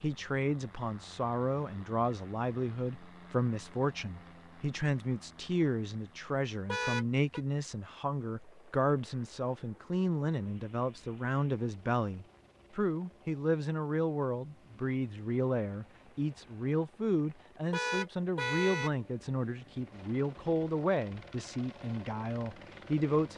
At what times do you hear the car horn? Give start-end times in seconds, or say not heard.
6.7-7.4, 17.7-18.9.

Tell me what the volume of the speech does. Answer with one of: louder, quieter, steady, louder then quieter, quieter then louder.
steady.